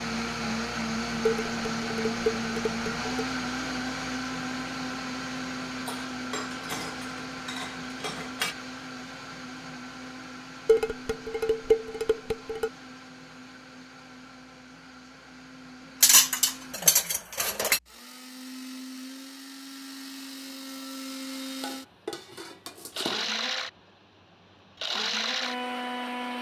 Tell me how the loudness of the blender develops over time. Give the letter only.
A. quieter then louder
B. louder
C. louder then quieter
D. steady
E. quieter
A.